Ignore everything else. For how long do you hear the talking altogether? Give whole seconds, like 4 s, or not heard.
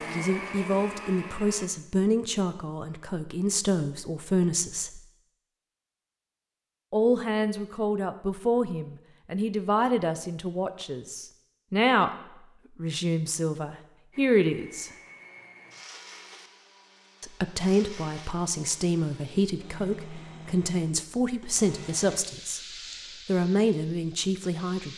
19 s.